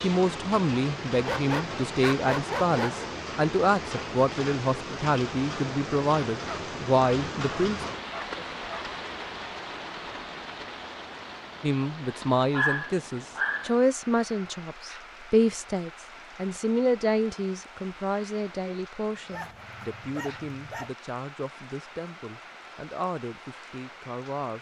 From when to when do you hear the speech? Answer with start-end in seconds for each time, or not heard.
0.0-7.8, 11.6-24.5.